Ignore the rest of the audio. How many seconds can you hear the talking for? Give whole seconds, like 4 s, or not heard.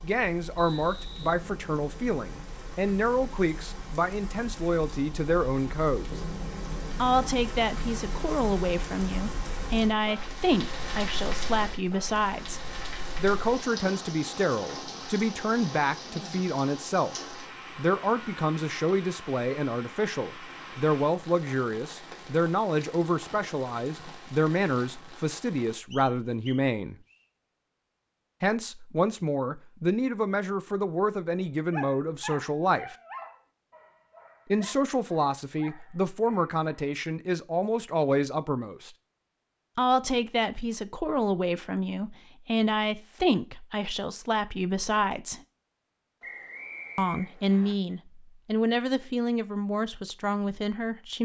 45 s.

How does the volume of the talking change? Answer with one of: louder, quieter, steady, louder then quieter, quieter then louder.
steady.